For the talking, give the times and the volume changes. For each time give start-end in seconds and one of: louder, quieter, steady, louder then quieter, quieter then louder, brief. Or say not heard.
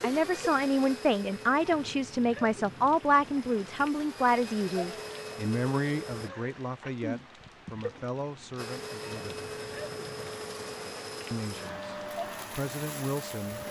0.0-9.4 quieter
11.3-13.6 brief.